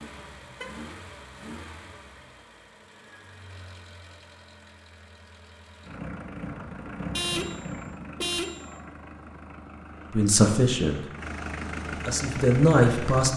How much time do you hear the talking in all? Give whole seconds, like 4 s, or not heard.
2 s.